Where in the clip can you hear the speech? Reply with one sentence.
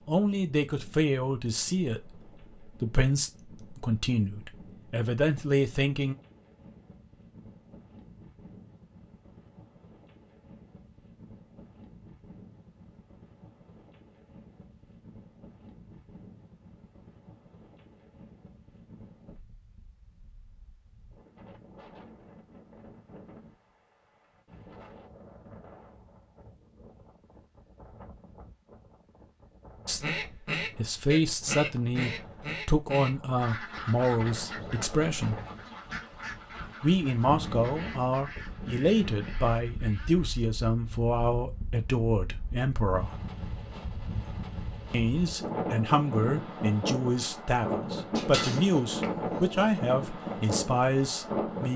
You can hear the speech from 0.1 to 6.2 s, from 29.9 to 35.4 s, from 36.8 to 43.1 s and from 44.9 to 51.7 s.